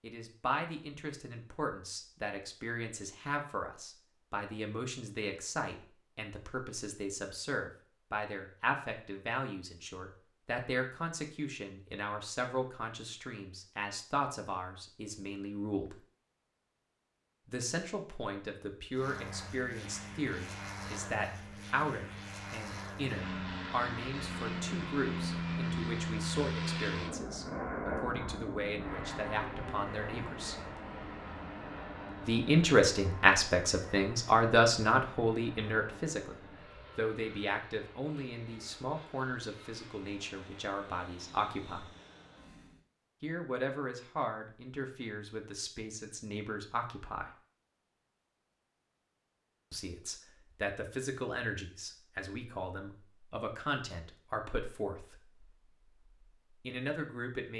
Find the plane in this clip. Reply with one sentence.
The plane can be heard from 18.9 to 42.9 s.